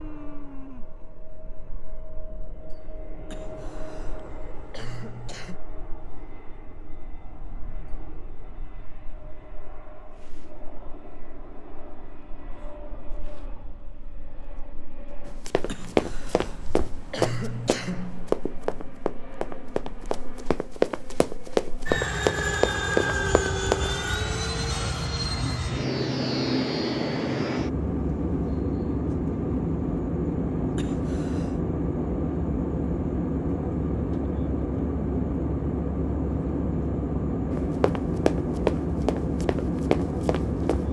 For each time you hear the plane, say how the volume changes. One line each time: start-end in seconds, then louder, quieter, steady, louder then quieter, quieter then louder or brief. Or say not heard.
0.0-40.8 louder.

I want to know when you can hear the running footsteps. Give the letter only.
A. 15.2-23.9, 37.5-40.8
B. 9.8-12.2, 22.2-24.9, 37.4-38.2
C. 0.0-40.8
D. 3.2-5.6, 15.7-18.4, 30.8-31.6
A.